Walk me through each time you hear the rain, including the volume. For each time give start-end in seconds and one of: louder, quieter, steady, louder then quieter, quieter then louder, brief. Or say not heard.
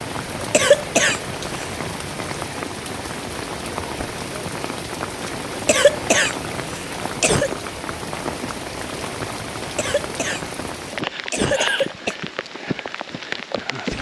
0.0-13.9 steady.